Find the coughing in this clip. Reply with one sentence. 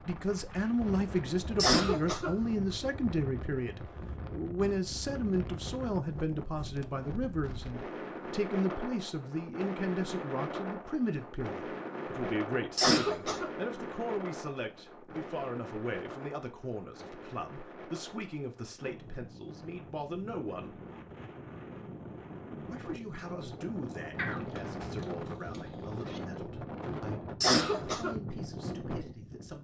You can hear the coughing from 1.6 to 2.4 s, from 12.8 to 13.5 s and from 27.4 to 28.1 s.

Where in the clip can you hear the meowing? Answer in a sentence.
You can hear the meowing from 24.1 to 26.2 s.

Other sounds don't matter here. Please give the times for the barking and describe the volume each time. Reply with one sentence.
You can't hear the barking here.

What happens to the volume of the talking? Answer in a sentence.
The volume of the talking goes down.